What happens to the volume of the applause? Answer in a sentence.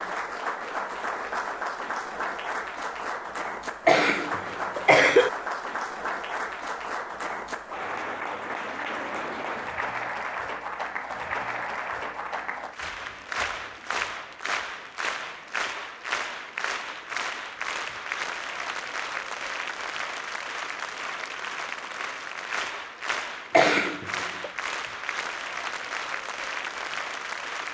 The loudness of the applause stays about the same.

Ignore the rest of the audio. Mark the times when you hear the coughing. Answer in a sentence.
The coughing can be heard from 3.9 to 5.3 s and from 23.5 to 24.5 s.